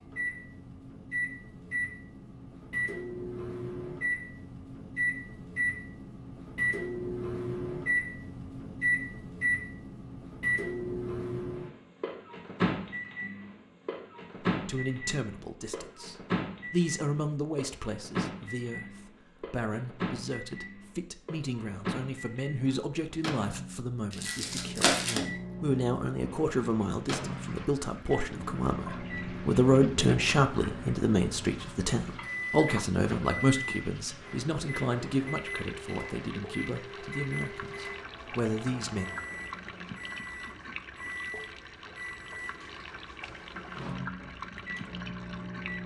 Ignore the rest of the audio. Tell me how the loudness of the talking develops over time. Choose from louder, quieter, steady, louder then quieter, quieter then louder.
louder then quieter.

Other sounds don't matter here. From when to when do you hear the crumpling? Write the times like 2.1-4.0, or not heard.
24.1-25.2.